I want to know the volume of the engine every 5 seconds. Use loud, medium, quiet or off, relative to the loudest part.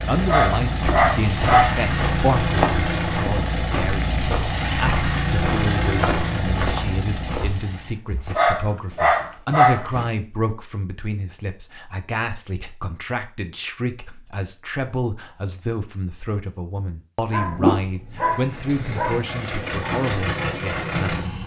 loud, loud, off, medium, loud.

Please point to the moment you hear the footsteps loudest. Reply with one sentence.
The volume of the footsteps peaks at 3 seconds.